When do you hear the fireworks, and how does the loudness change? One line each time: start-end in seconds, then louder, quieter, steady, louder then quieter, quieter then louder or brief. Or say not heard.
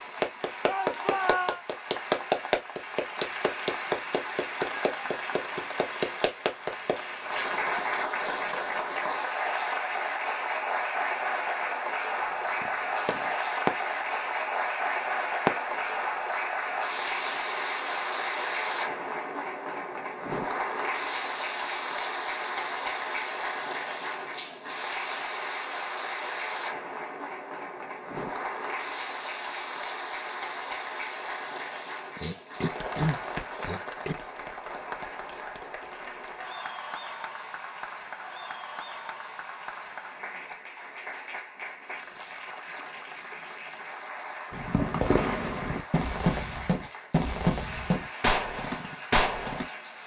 12.6-13.7 brief
15.4-15.9 brief
44.5-49.6 steady.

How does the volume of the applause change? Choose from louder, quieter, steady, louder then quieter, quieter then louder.
quieter.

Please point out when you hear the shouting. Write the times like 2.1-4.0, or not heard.
0.7-1.6.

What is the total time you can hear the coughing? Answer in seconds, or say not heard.
2 s.